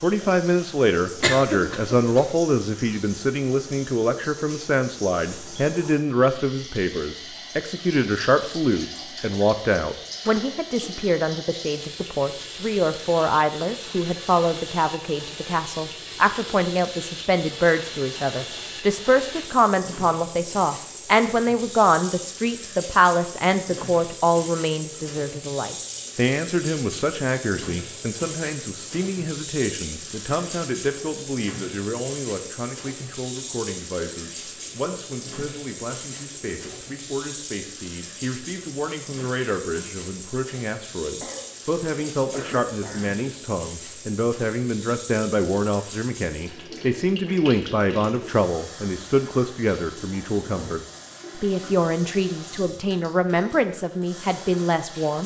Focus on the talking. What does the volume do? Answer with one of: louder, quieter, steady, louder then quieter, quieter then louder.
quieter then louder.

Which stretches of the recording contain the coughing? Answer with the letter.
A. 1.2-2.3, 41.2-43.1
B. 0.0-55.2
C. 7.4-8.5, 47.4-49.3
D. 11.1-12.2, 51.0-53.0
A.